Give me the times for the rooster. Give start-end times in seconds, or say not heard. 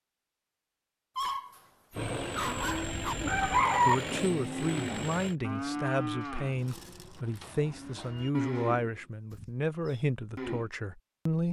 1.9-4.0.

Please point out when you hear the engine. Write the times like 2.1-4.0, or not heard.
1.9-5.3.